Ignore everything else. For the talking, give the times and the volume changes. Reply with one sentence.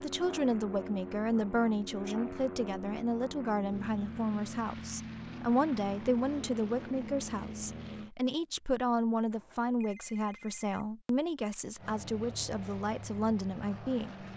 The talking can be heard from 0.0 to 14.2 s, at a steady volume.